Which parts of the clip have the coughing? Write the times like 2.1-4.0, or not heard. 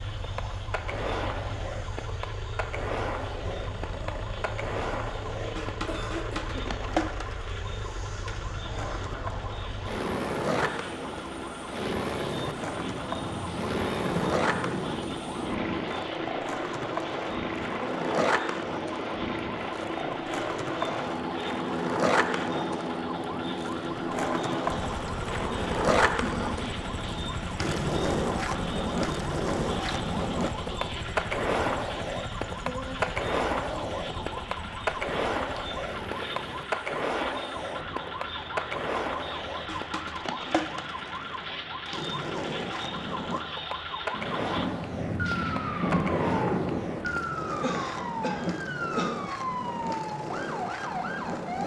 5.8-6.7, 26.2-26.6, 47.6-49.1.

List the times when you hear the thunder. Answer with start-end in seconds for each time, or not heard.
12.6-15.7, 44.1-47.1.